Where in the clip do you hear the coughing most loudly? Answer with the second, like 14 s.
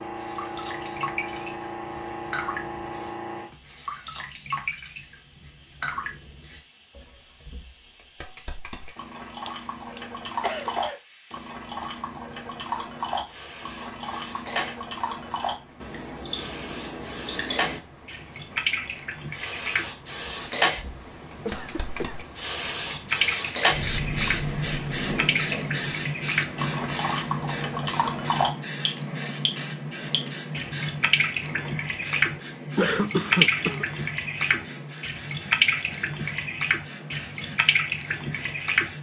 33 s.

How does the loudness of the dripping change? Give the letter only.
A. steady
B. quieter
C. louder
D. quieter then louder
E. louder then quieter
C.